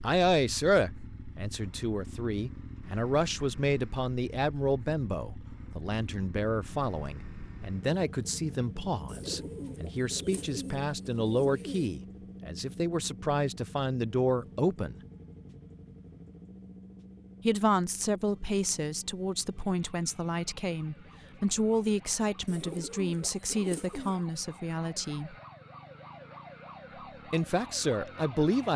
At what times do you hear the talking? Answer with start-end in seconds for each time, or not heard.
0.0-14.9, 17.4-25.4, 27.3-28.7.